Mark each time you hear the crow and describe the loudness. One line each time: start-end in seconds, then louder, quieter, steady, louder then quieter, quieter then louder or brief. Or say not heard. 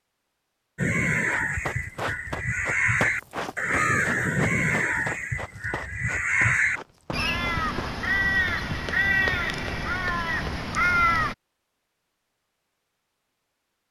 0.8-11.3 steady.